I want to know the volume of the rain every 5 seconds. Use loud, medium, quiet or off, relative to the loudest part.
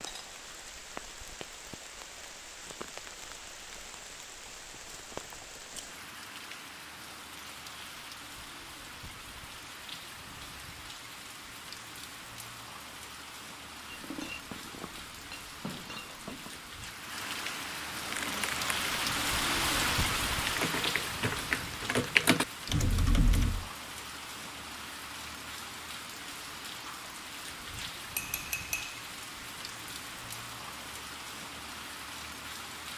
medium, medium, medium, loud, loud, medium, medium.